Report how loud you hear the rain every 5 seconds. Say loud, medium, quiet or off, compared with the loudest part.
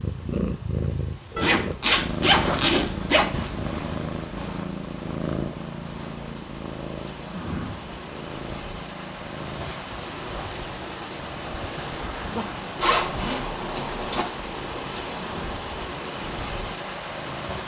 quiet, medium, loud, loud.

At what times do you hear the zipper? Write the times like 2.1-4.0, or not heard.
1.4-3.3, 12.8-14.2.